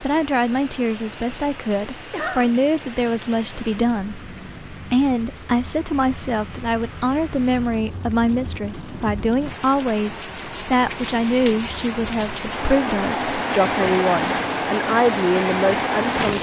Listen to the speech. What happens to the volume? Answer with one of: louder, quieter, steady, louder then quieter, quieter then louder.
steady.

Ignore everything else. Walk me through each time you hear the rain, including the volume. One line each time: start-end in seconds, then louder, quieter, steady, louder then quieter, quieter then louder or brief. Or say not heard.
0.0-16.3 louder.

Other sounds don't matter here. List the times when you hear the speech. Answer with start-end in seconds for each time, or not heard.
0.0-16.3.